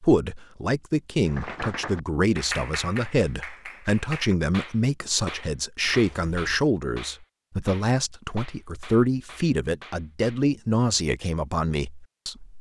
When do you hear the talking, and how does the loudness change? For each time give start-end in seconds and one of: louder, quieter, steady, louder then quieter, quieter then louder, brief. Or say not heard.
0.0-12.5 steady.